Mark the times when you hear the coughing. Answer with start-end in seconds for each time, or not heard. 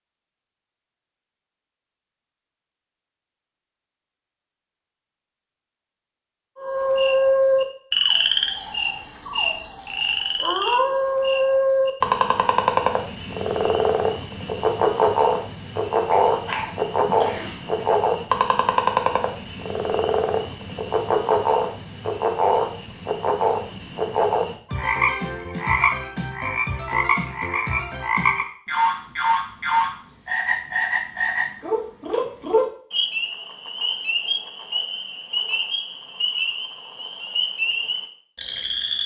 16.1-17.9.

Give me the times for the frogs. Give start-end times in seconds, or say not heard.
6.5-39.0.